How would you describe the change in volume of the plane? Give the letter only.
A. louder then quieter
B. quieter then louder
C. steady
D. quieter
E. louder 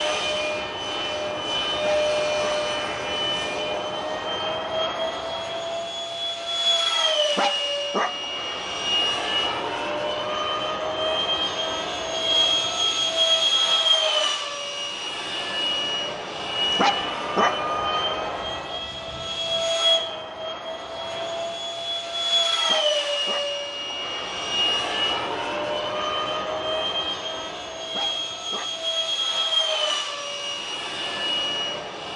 C.